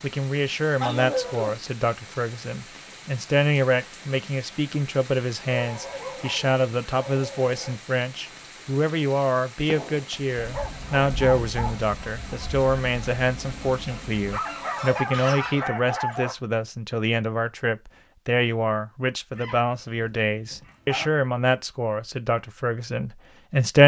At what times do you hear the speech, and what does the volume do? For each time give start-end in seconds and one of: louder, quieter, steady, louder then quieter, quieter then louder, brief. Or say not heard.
0.0-23.8 steady.